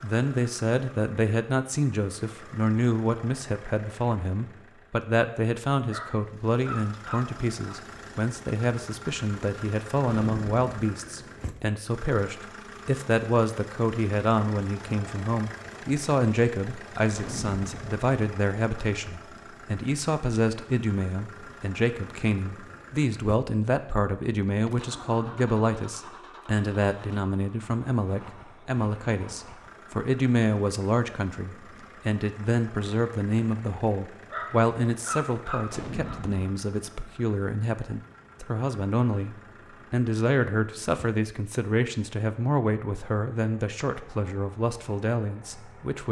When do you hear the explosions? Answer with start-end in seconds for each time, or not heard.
10.1-10.8, 17.1-17.9, 35.6-36.4.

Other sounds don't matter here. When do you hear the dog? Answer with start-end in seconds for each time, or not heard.
5.9-7.8, 34.3-36.2.